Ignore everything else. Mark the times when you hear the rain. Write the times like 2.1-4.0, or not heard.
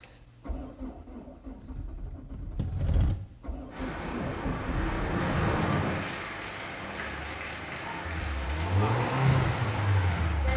3.7-10.5.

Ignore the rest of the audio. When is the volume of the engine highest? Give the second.
9 s.